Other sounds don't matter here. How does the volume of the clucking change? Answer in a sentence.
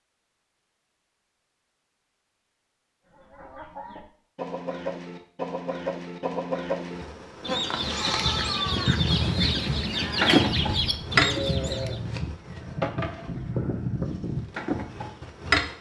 The volume of the clucking goes up.